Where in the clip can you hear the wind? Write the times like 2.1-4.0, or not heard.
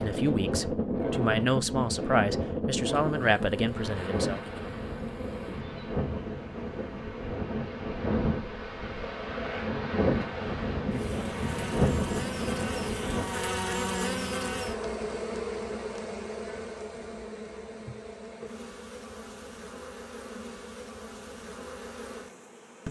0.0-13.2.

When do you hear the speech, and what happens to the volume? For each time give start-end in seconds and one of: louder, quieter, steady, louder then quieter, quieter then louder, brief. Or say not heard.
0.0-4.4 louder.